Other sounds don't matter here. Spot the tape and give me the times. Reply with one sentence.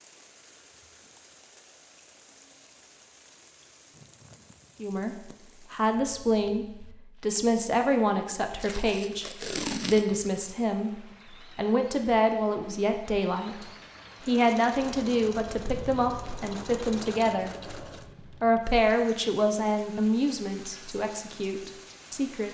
You can hear the tape from 8.6 to 10.3 s.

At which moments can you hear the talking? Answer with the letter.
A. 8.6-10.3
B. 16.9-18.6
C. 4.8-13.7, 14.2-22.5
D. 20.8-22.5
C.